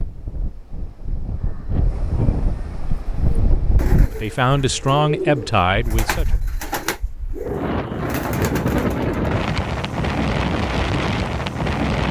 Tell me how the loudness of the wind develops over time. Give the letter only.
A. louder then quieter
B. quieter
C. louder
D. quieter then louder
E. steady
D.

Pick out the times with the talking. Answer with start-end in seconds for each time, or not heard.
4.1-6.2.